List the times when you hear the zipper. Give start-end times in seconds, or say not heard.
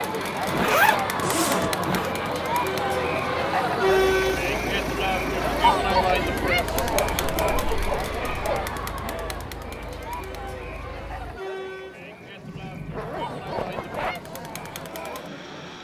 0.5-2.1, 6.8-8.7, 12.9-14.2.